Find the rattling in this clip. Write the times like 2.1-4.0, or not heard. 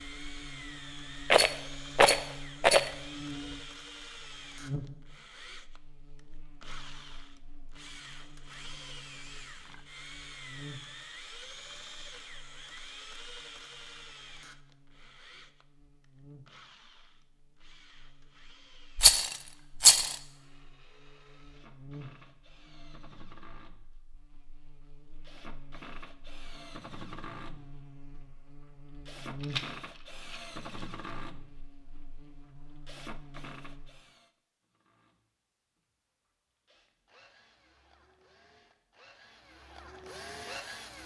1.2-2.9, 18.9-20.1, 29.4-31.1.